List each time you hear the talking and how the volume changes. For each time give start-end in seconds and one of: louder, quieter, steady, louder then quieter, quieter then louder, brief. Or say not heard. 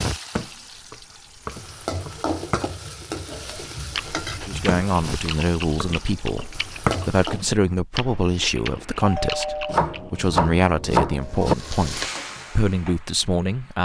4.5-13.8 steady.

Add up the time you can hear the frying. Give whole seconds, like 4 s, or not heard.
10 s.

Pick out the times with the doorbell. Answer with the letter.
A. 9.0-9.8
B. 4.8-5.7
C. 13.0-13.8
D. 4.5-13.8
A.